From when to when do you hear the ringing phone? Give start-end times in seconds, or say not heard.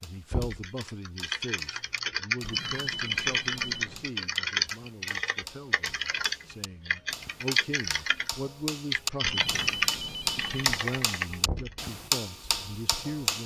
2.4-4.2, 9.2-10.8.